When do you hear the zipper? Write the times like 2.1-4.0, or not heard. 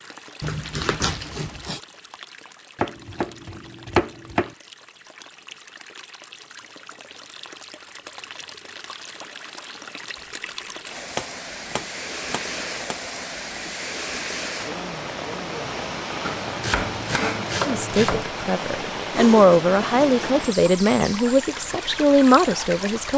0.4-1.8, 19.1-20.3.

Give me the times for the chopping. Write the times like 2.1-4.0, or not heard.
2.8-4.5, 11.1-12.9, 16.2-18.2.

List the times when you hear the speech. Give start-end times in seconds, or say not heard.
17.6-23.1.